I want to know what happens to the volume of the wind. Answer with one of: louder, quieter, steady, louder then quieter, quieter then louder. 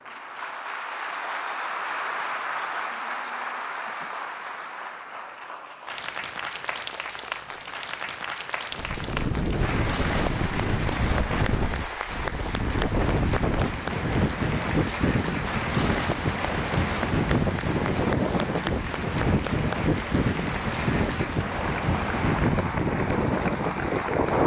steady.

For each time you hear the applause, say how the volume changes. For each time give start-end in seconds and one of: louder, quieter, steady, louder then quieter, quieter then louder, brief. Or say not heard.
0.0-24.4 steady.